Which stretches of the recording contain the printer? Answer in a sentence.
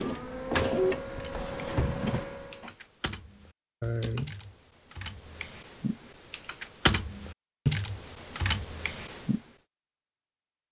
The printer can be heard from 0.0 to 2.7 s.